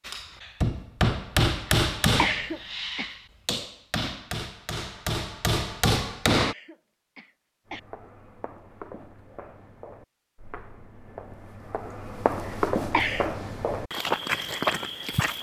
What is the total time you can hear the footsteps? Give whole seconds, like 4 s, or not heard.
8 s.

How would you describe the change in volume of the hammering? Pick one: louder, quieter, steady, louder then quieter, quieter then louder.
quieter then louder.